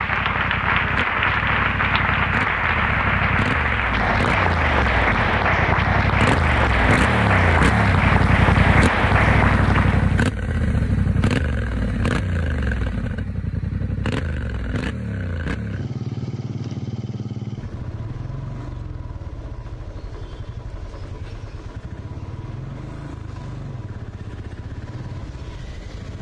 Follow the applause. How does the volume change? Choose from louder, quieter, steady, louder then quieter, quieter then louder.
steady.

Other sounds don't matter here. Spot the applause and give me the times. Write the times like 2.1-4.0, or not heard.
0.0-10.2.